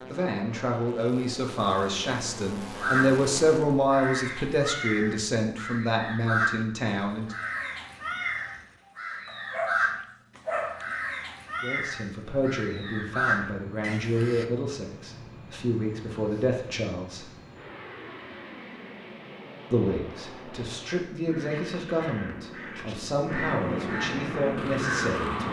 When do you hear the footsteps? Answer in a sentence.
You can't hear the footsteps here.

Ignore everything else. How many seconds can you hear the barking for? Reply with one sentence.
The barking can be heard for 2 seconds in total.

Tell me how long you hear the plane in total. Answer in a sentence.
You can hear the plane for 17 seconds altogether.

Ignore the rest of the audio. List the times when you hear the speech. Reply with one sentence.
You can hear the speech from 0.1 to 7.3 s, from 11.6 to 17.2 s and from 19.7 to 25.4 s.